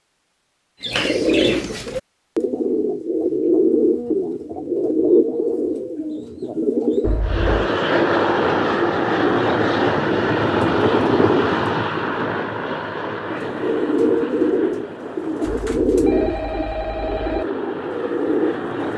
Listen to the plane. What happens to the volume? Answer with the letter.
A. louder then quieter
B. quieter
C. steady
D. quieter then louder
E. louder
B.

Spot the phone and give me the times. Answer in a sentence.
The phone can be heard from 7.0 to 7.7 s and from 15.4 to 17.4 s.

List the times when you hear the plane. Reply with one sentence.
The plane can be heard from 7.2 to 18.9 s.